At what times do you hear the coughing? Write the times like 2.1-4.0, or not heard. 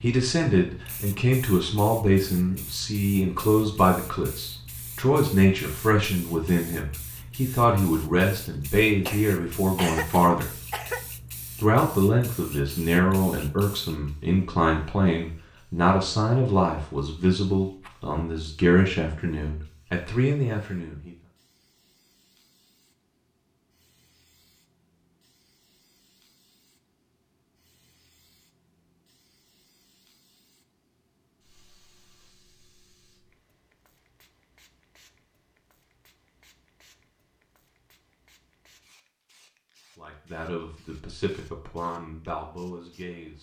9.1-11.1.